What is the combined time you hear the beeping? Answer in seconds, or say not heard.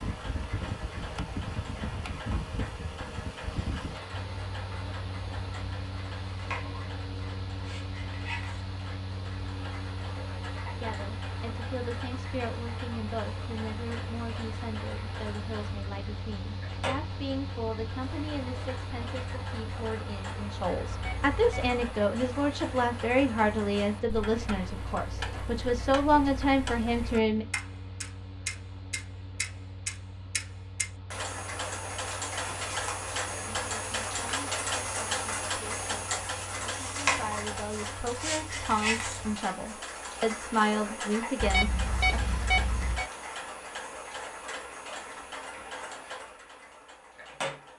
3 s.